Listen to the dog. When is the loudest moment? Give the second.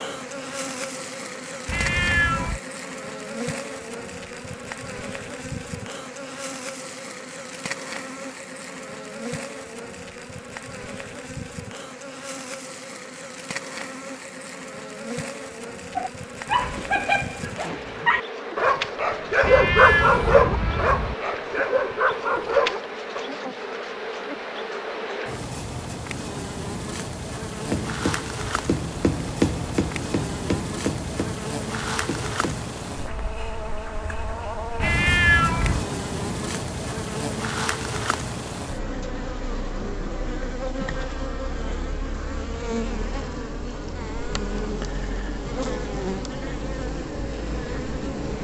20 s.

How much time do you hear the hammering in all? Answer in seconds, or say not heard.
5 s.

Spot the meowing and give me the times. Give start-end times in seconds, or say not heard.
1.6-2.6, 19.4-21.1, 34.8-35.9.